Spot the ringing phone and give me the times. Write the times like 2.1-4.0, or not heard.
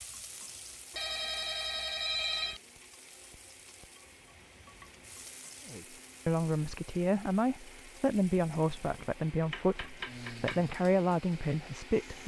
0.9-2.6.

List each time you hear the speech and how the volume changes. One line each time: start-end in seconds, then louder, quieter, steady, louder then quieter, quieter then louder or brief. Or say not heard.
5.7-12.2 steady.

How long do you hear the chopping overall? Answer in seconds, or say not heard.
2 s.